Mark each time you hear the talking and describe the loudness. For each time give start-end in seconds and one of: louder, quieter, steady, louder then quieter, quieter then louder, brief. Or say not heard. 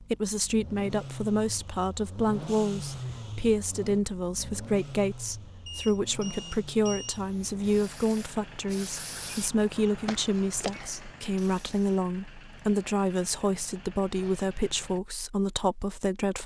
0.0-16.4 steady.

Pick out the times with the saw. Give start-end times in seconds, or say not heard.
not heard.